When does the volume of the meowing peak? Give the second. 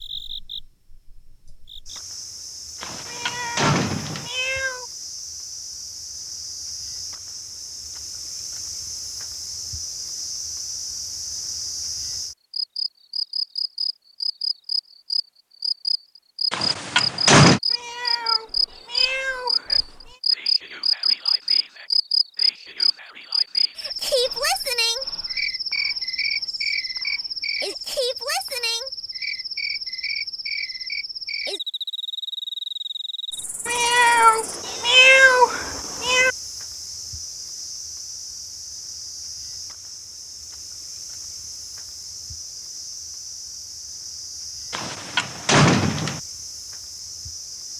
35 s.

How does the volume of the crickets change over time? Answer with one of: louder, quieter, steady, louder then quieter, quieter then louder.
louder then quieter.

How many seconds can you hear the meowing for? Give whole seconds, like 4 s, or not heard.
7 s.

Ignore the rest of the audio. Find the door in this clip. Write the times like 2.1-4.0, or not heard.
2.8-4.3, 16.5-17.6, 44.7-46.2.